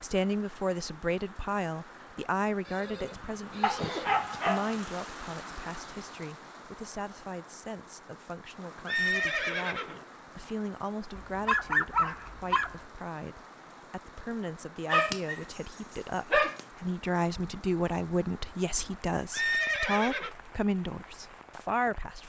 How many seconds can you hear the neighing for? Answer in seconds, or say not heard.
4 s.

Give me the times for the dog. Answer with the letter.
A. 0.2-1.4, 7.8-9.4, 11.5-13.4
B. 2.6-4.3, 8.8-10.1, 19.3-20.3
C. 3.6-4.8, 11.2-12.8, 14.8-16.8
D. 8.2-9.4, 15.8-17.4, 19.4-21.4
C.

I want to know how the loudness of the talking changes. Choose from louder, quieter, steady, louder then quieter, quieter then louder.
quieter then louder.